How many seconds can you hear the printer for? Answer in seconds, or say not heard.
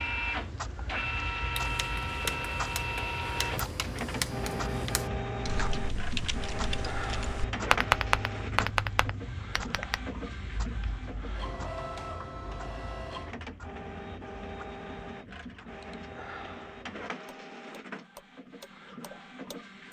20 s.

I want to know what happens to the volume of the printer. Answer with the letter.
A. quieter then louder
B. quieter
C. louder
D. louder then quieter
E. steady
B.